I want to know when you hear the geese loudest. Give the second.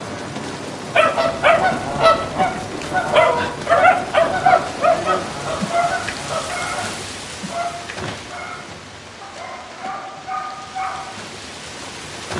2 s.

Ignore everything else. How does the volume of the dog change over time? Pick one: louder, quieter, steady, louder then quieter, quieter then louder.
quieter.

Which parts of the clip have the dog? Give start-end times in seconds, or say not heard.
0.9-11.2.